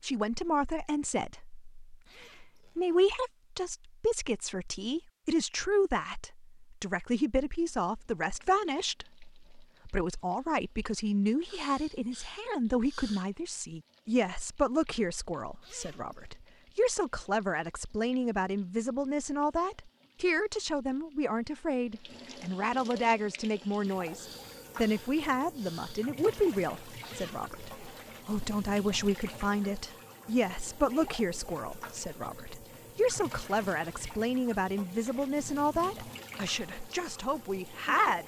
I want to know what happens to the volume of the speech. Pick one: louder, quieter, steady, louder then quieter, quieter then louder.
steady.